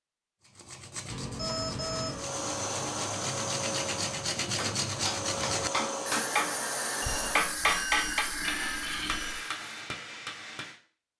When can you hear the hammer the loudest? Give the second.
8 s.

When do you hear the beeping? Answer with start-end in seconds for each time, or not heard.
1.1-2.2, 7.0-9.4.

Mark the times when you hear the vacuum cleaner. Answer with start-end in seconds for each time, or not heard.
2.0-7.5.